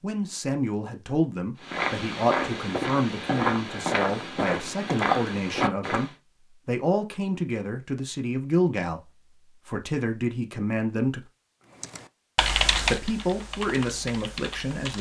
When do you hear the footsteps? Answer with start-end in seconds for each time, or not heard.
1.6-6.1.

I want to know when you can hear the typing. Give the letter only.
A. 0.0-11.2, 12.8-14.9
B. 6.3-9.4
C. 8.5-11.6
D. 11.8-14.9
D.